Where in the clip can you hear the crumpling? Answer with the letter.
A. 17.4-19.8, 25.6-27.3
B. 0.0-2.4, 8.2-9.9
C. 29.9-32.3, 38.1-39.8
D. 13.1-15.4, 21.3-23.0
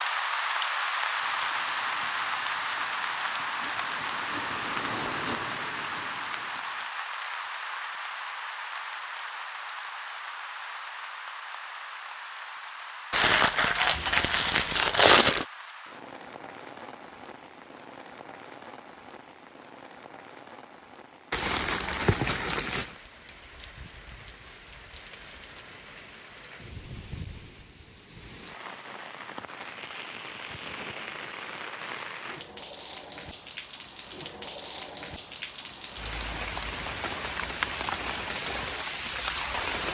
D.